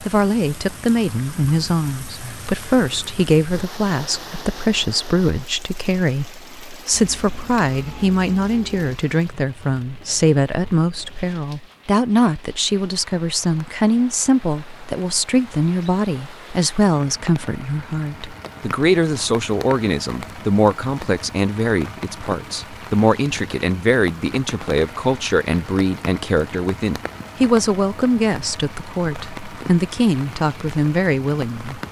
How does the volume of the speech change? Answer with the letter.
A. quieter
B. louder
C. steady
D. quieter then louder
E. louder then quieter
C.